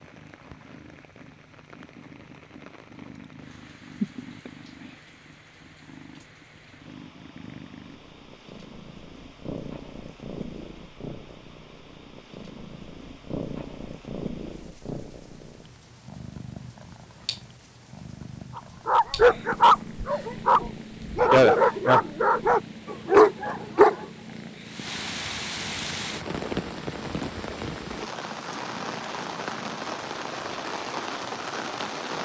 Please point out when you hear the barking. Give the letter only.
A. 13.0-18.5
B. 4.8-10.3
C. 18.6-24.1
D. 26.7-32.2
C.